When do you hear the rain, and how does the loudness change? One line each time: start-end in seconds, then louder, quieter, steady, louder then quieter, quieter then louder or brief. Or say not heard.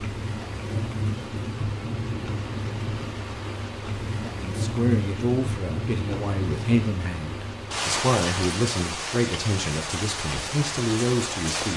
0.0-11.7 steady.